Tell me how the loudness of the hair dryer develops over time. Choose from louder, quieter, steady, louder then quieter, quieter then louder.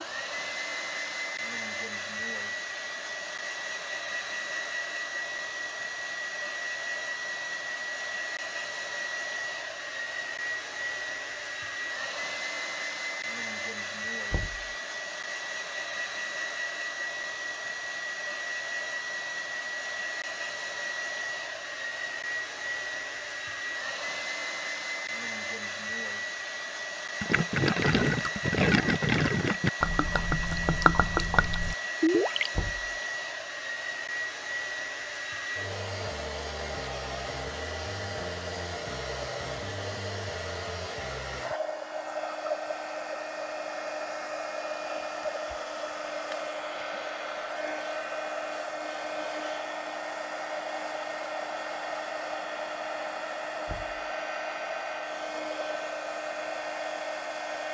steady.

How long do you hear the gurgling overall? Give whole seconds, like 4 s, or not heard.
5 s.